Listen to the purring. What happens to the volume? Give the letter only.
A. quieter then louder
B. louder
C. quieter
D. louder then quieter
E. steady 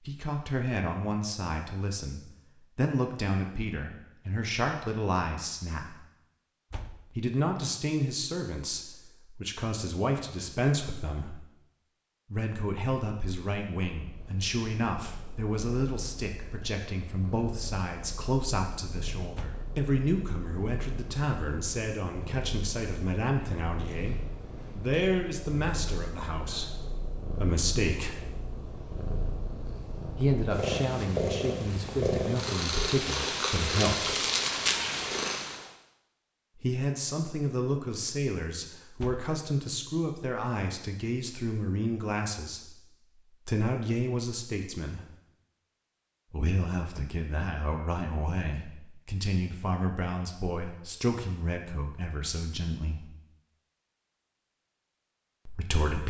B.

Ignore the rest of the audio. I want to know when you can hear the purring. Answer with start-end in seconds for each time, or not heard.
13.9-35.7.